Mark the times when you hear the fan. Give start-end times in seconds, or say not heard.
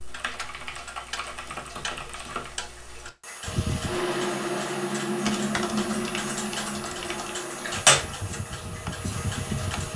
3.4-9.9.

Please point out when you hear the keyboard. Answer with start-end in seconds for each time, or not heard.
0.1-2.5, 5.2-7.4.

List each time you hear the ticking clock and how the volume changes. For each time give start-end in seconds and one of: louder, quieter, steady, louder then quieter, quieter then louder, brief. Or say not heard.
0.0-9.9 louder.